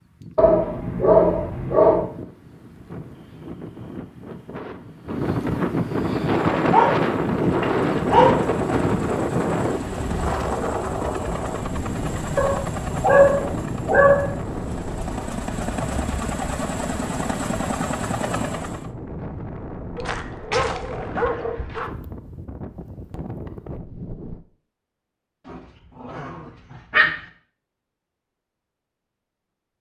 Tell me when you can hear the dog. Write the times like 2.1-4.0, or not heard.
0.3-2.1, 6.5-8.4, 12.3-14.3, 19.9-21.9, 25.4-27.2.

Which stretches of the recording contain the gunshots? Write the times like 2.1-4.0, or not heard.
not heard.